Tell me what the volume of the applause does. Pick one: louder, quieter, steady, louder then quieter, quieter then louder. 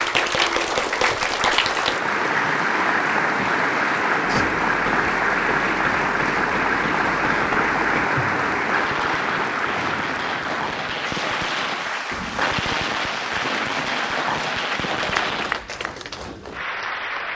quieter.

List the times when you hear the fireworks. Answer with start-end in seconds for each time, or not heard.
4.2-15.6.